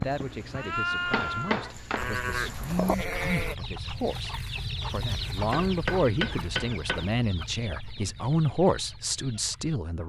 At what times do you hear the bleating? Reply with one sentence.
The bleating can be heard from 0.0 to 3.5 s.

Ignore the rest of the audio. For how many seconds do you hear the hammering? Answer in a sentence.
The hammering can be heard for 4 seconds in total.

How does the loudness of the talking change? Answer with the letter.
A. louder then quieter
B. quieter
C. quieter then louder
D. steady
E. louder
E.